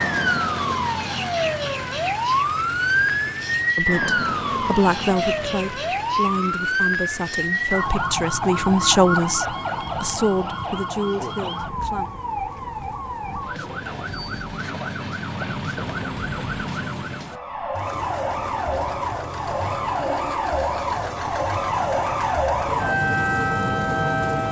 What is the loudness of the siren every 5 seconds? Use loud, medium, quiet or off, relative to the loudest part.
loud, loud, medium, medium, loud.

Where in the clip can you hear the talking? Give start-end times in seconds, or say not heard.
3.8-12.1.